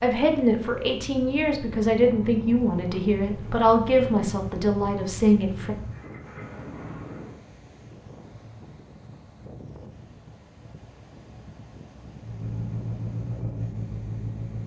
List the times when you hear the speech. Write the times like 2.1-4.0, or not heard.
0.0-5.8.